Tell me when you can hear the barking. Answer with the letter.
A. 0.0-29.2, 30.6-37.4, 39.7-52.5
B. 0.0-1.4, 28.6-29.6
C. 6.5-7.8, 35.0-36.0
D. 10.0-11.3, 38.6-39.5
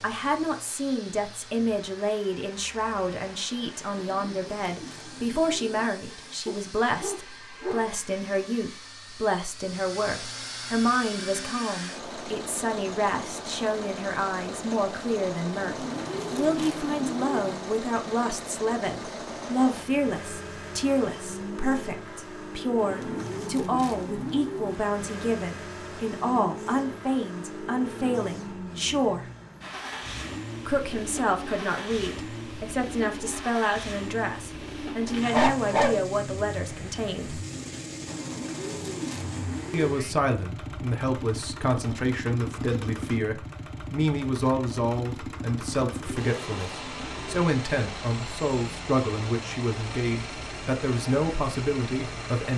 C.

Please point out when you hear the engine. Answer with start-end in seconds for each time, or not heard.
0.0-52.5.